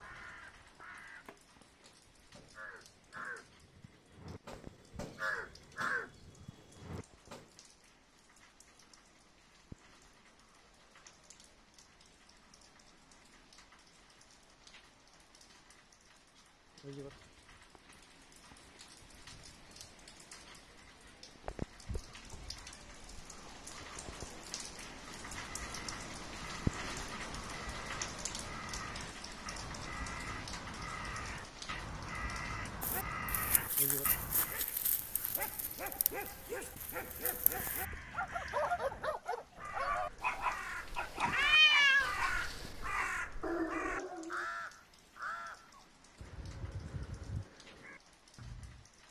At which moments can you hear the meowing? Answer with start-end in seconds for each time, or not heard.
41.3-42.1.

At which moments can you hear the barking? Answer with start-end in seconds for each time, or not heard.
32.8-44.5.